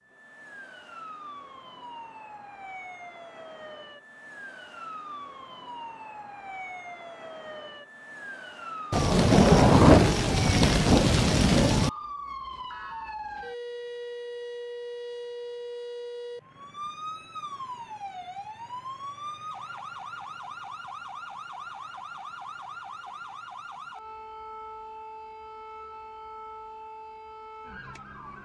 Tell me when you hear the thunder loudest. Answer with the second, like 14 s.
10 s.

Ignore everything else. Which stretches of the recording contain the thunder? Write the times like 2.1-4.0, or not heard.
8.9-11.9.